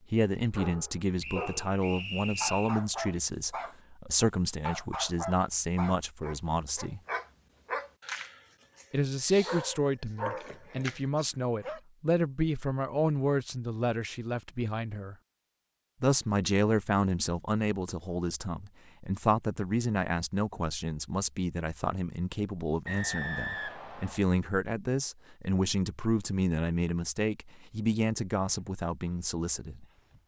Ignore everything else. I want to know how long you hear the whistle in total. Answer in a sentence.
The whistle can be heard for 3 seconds in total.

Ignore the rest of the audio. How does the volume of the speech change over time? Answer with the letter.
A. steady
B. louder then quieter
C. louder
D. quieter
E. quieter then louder
A.